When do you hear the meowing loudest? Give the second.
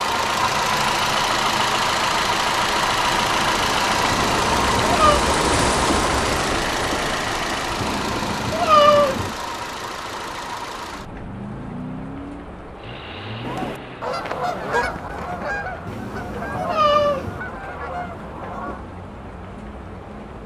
9 s.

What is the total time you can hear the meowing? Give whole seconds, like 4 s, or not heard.
4 s.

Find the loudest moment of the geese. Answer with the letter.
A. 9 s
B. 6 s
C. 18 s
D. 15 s
D.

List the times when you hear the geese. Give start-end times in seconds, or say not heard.
13.4-18.9.